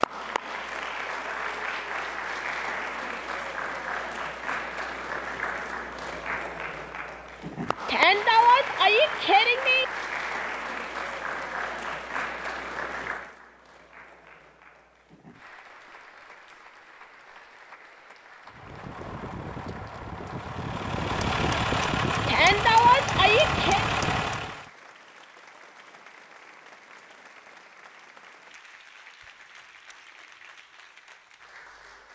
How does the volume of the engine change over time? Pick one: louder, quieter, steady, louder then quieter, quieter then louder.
louder.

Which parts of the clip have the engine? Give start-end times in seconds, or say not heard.
18.4-24.7.